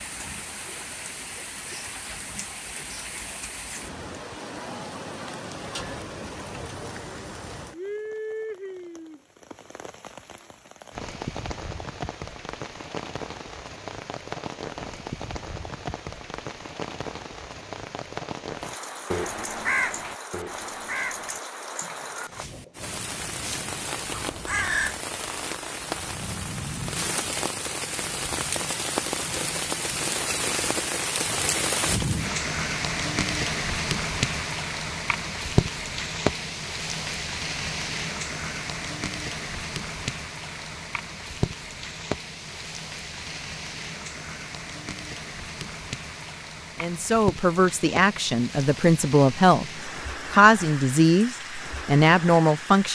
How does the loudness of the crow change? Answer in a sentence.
The loudness of the crow goes down, then up.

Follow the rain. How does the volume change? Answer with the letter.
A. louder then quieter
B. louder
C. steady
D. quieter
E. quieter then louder
A.